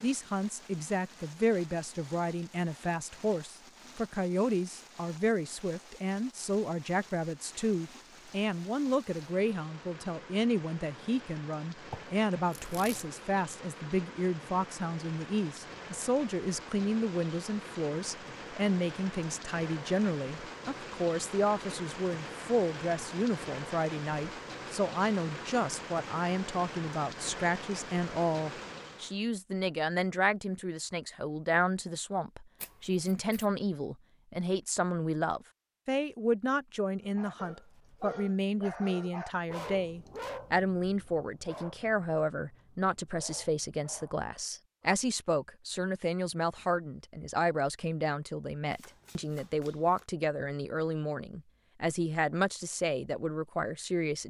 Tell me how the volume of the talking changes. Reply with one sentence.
The volume of the talking stays about the same.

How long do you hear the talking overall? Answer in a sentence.
The talking can be heard for 54 seconds in total.